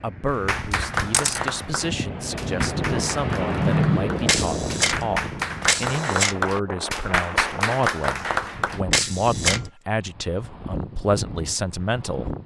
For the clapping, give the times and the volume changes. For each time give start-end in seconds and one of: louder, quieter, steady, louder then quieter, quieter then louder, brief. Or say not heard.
0.3-8.8 quieter then louder.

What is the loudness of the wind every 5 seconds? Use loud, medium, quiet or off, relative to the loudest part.
loud, medium, medium.